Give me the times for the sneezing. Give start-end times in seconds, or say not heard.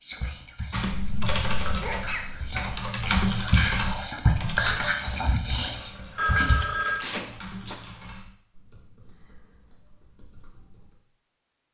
1.6-2.2, 7.0-7.8.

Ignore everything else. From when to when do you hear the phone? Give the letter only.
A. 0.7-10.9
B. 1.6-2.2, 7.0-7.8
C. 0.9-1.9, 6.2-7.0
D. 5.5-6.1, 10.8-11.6
C.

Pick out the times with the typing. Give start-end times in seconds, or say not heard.
0.7-10.9.